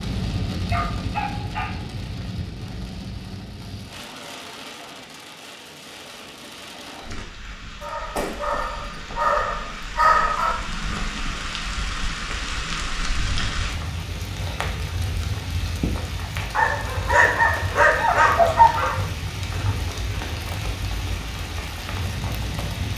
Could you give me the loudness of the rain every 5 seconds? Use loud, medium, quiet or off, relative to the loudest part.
loud, medium, loud, loud, loud.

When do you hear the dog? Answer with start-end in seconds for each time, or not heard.
0.5-1.8, 7.8-10.6, 16.5-18.9.